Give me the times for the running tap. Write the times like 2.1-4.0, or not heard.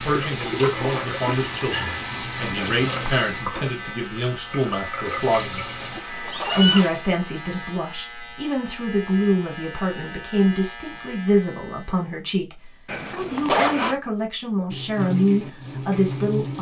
0.0-7.0, 14.7-16.5.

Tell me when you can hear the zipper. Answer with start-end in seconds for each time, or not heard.
2.5-3.2, 5.8-6.9, 12.8-13.9.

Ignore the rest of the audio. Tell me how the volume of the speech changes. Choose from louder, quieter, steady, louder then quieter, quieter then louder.
steady.